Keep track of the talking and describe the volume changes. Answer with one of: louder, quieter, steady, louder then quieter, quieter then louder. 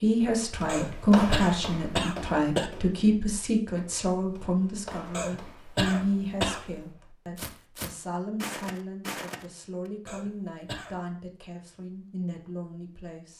quieter.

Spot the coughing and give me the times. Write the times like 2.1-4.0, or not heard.
0.7-2.7, 5.1-6.6, 10.1-10.9.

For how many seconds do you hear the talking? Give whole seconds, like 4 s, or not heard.
13 s.